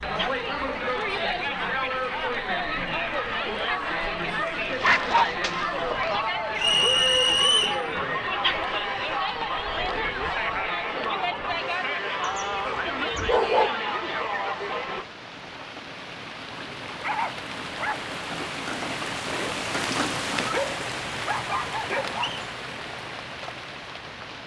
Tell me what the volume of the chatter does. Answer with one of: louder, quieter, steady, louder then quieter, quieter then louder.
steady.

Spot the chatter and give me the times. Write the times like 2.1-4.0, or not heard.
0.0-15.1.